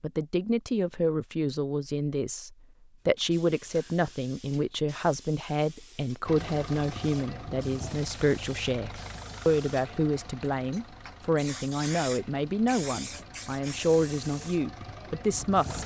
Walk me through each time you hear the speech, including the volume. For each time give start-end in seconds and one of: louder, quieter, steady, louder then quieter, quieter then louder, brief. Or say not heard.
0.0-15.8 steady.